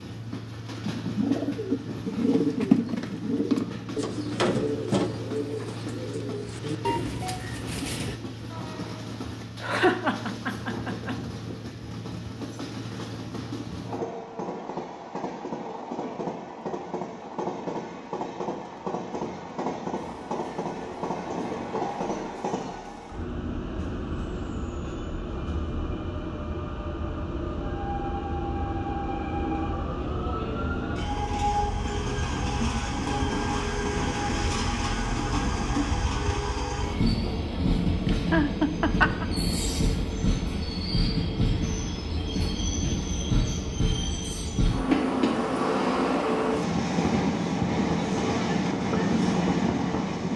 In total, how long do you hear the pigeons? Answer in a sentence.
The pigeons can be heard for 7 seconds in total.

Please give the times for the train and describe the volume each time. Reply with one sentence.
The train can be heard from 0.0 to 50.3 s, getting louder.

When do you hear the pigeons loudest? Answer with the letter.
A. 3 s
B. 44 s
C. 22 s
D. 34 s
A.